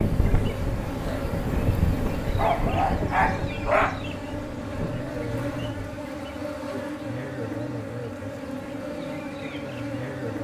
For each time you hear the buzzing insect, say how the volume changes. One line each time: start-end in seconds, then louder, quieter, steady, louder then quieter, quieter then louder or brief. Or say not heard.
0.0-10.3 steady.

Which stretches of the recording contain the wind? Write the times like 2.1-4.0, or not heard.
0.0-6.0.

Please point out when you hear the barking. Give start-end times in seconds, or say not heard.
2.4-4.0.